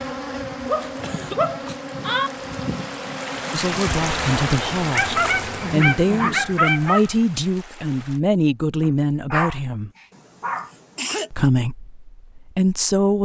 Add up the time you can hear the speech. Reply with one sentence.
You can hear the speech for 8 seconds altogether.